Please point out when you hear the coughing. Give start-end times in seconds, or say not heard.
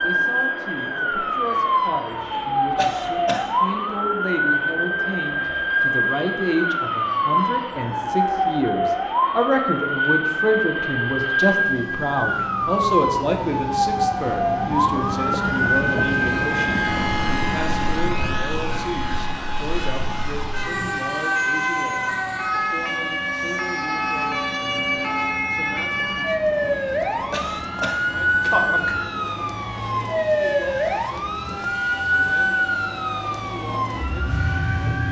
2.8-3.5, 27.3-28.9.